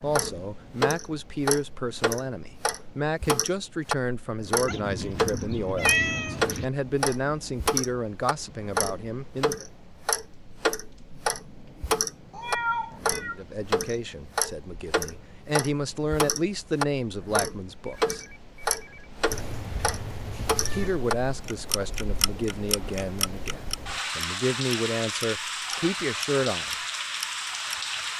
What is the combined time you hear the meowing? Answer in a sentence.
You can hear the meowing for 5 seconds altogether.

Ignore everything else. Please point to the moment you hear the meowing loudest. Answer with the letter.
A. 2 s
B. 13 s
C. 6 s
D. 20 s
C.